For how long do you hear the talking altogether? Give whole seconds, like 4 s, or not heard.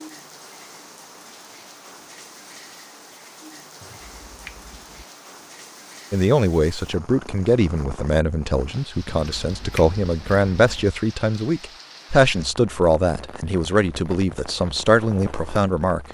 10 s.